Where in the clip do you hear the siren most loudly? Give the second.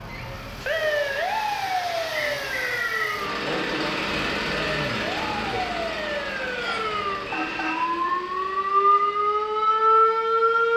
10 s.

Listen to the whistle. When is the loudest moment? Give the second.
3 s.